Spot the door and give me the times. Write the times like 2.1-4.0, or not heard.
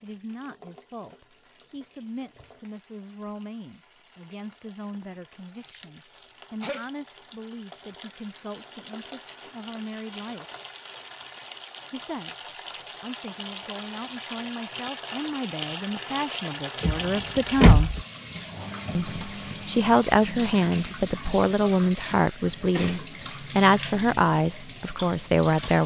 16.8-18.0.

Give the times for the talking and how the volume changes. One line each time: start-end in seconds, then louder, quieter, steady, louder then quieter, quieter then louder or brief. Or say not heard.
0.0-10.4 steady
11.9-17.9 louder
18.9-25.8 steady.